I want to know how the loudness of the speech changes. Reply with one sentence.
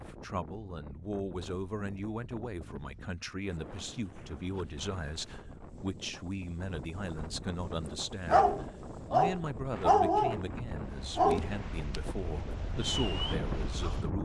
The volume of the speech stays about the same.